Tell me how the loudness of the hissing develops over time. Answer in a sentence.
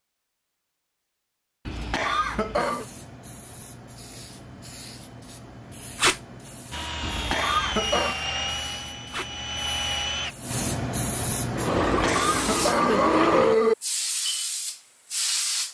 The volume of the hissing goes up.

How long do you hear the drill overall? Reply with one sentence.
The drill can be heard for 4 seconds in total.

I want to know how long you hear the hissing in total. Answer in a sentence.
You can hear the hissing for 13 seconds altogether.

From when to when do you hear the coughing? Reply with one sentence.
The coughing can be heard from 1.6 to 2.9 s, from 7.0 to 8.2 s and from 11.8 to 13.8 s.